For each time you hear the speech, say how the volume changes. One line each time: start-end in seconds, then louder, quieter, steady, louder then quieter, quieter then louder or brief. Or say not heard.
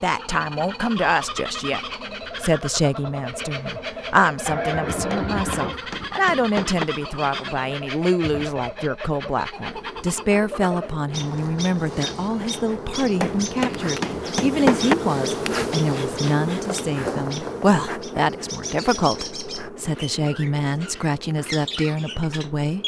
0.0-22.8 steady.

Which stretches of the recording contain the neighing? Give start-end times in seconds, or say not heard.
4.5-5.8.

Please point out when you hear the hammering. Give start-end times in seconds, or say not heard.
5.3-6.8, 13.2-14.9.